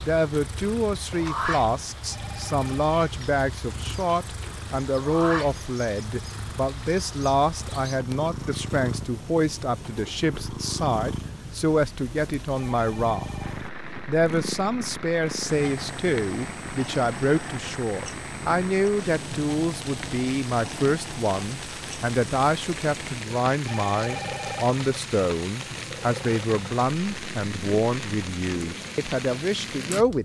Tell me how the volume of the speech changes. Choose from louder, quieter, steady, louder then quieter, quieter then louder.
steady.